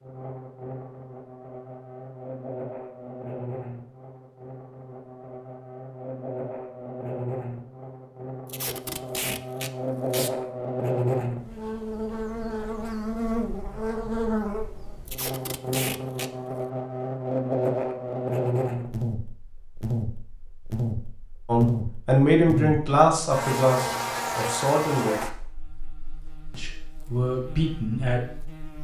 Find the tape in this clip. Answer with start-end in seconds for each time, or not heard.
8.4-10.3, 15.1-16.3.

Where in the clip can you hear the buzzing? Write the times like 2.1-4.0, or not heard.
0.0-28.8.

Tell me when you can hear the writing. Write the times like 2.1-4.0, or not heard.
not heard.